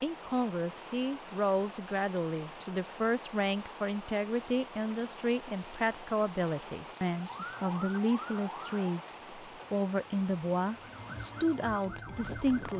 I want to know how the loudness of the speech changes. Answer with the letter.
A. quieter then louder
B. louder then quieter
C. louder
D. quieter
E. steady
E.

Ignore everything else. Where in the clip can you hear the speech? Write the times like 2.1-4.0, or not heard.
0.0-12.7.